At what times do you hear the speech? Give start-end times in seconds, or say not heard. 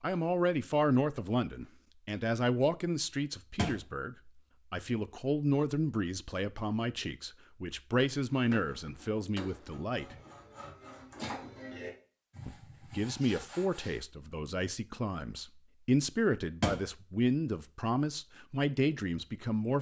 0.0-10.2, 12.4-19.7.